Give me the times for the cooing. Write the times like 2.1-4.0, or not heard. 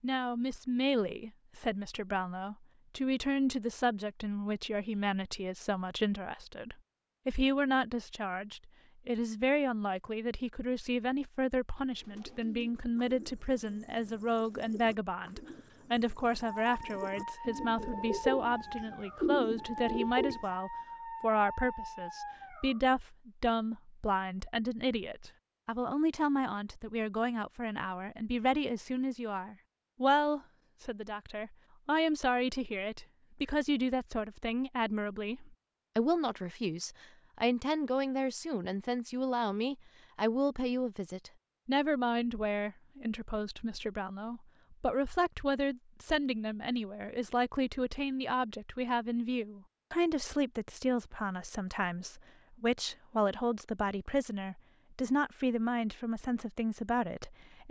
11.9-20.4.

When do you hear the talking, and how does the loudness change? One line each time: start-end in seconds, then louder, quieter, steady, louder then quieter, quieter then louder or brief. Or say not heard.
0.0-57.6 steady.